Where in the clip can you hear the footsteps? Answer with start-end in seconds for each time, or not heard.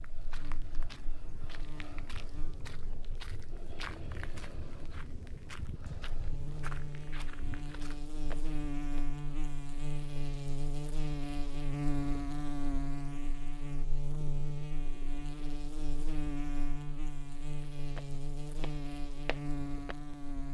0.0-9.2, 17.6-20.1.